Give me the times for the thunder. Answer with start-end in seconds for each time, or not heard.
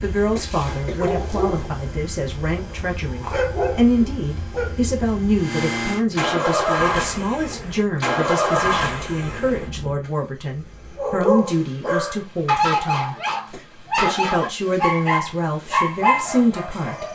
not heard.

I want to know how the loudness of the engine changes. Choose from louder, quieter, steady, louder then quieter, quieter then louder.
louder then quieter.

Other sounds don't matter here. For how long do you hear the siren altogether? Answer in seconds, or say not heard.
not heard.